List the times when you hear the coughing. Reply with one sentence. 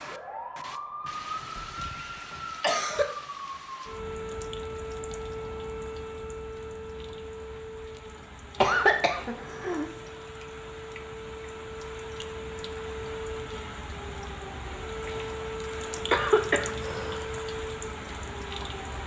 The coughing can be heard from 1.1 to 1.6 s, from 2.3 to 3.0 s, from 8.6 to 9.9 s and from 16.1 to 17.2 s.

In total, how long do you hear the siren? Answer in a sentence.
The siren can be heard for 19 seconds in total.